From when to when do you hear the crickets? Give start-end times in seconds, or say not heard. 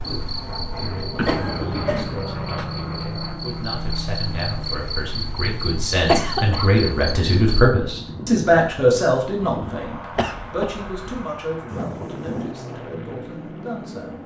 0.0-7.8.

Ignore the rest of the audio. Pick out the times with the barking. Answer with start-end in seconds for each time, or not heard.
not heard.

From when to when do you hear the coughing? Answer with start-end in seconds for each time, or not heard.
1.1-2.7, 6.0-6.7, 10.1-11.2.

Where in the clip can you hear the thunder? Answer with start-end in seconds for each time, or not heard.
11.7-12.6.